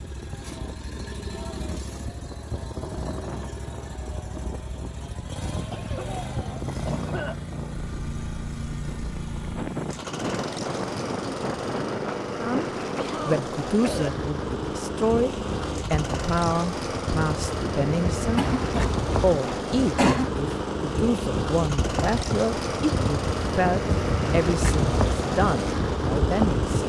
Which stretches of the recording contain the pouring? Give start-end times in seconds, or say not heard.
not heard.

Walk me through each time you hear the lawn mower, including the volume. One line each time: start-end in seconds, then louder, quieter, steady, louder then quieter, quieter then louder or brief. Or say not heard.
0.0-26.8 louder.